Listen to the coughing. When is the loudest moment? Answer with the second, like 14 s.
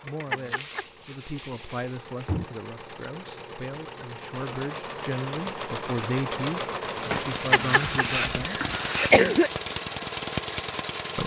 9 s.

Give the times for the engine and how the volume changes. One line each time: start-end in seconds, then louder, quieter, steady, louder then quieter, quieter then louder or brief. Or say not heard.
0.0-11.2 louder.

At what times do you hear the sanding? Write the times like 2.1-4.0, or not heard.
0.3-2.5, 7.1-9.2.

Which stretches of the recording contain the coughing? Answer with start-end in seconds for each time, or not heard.
0.3-0.8, 7.5-9.5.